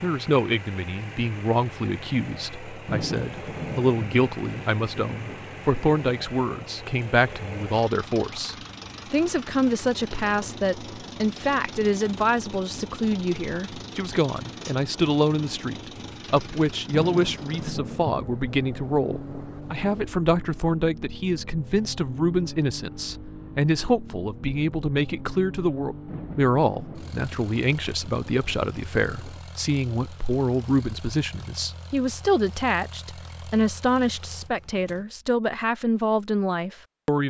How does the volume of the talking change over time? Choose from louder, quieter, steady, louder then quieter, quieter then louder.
steady.